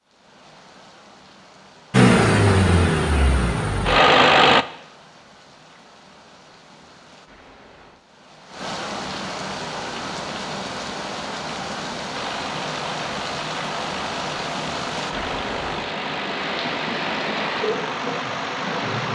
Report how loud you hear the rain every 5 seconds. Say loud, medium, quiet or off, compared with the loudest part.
quiet, medium, loud, loud.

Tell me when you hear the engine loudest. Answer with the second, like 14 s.
4 s.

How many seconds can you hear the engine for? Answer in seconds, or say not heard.
10 s.